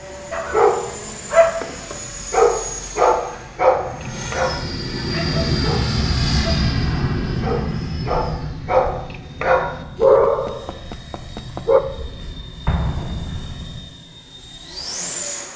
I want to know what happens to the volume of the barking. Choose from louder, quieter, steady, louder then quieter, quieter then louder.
quieter then louder.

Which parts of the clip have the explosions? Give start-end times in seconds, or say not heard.
12.7-13.9.